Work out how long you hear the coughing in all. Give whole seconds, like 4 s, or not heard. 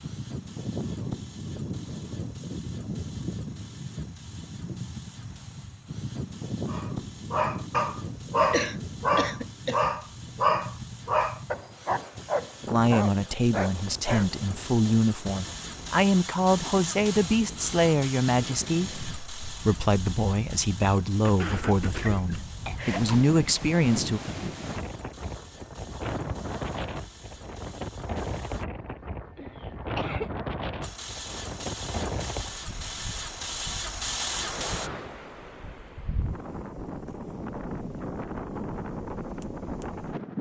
4 s.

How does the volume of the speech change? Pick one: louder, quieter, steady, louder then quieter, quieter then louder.
steady.